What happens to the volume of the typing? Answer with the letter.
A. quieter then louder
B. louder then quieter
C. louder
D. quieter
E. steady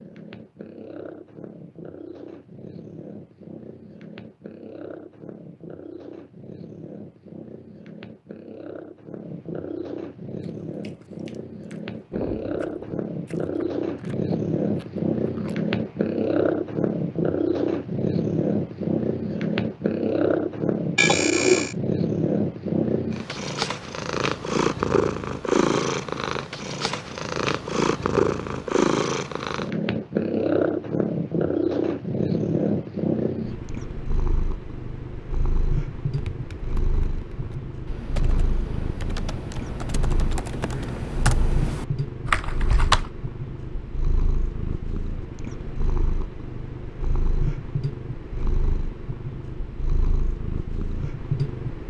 C.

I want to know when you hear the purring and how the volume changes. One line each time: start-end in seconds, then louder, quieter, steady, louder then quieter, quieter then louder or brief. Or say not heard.
0.0-51.8 louder then quieter.